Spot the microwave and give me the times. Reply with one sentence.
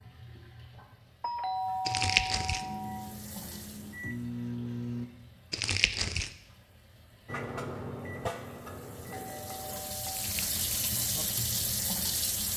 The microwave can be heard from 2.6 to 5.1 s and from 7.2 to 12.4 s.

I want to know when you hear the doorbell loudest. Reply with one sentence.
The loudest moment of the doorbell is at 2 seconds.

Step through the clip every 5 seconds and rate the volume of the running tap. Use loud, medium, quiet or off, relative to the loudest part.
quiet, quiet, loud.